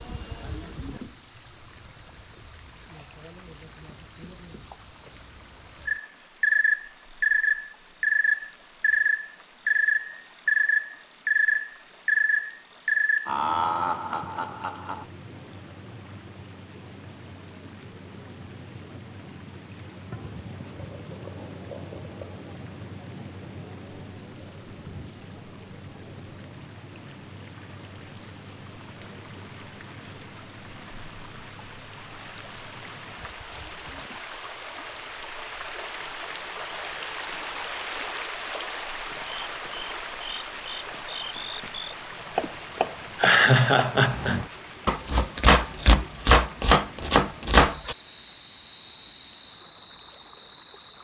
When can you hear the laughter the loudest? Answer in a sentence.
The loudest moment of the laughter is at 43 seconds.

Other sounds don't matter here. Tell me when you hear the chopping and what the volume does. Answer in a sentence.
You can hear the chopping from 42.2 to 48.0 s, getting louder.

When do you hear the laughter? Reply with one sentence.
The laughter can be heard from 13.2 to 15.1 s and from 42.4 to 44.4 s.